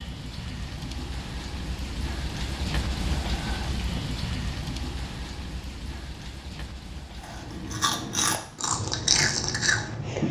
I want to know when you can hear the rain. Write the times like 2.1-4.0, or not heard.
0.0-10.2.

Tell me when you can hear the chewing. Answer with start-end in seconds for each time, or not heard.
7.2-10.2.